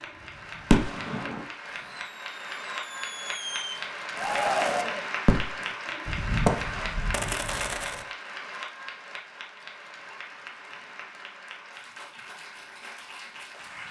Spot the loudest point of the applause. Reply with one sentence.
The volume of the applause peaks at 5 seconds.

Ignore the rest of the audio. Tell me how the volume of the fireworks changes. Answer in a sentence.
The loudness of the fireworks goes down, then up.